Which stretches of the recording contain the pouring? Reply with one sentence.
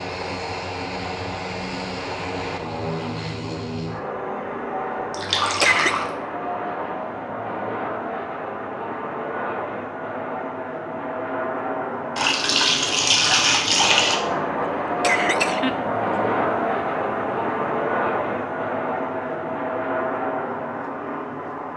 The pouring can be heard from 5.1 to 6.1 s and from 12.2 to 14.2 s.